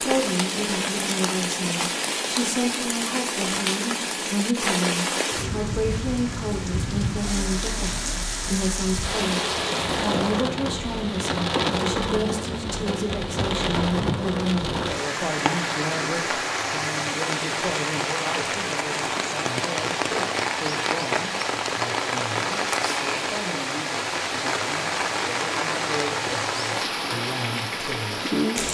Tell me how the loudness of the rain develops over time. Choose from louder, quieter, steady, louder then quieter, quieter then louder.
steady.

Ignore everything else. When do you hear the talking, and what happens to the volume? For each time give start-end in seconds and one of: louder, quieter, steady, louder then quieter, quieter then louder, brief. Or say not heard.
0.0-28.6 quieter.